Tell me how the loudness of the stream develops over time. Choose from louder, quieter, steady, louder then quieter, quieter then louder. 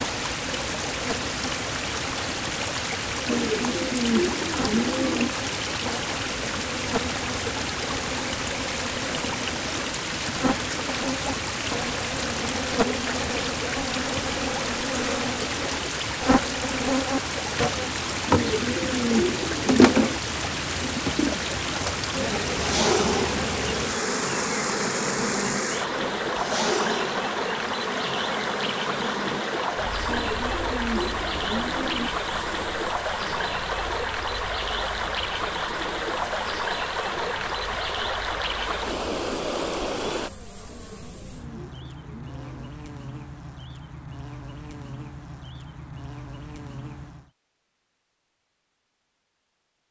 steady.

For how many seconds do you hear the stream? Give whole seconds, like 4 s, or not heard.
40 s.